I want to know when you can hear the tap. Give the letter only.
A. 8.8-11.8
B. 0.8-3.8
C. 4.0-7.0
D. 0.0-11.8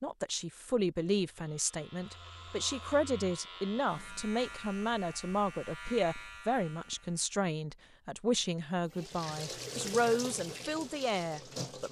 A.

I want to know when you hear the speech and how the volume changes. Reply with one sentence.
The speech can be heard from 0.0 to 11.8 s, at a steady volume.